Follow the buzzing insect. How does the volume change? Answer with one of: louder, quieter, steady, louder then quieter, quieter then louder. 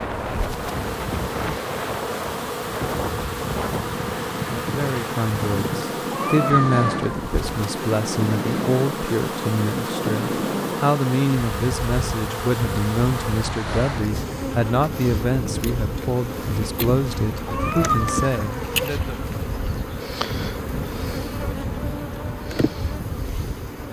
steady.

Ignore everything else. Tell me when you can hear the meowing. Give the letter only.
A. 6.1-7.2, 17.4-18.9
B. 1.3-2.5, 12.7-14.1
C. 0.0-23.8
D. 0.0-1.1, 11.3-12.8
A.